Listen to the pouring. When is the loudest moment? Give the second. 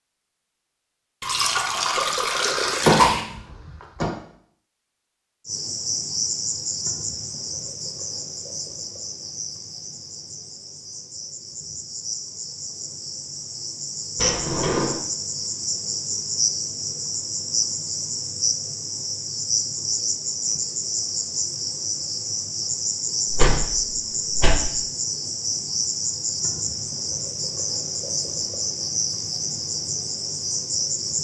3 s.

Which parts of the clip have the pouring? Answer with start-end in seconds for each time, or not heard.
1.2-3.2.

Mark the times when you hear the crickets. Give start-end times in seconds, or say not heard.
5.5-31.1.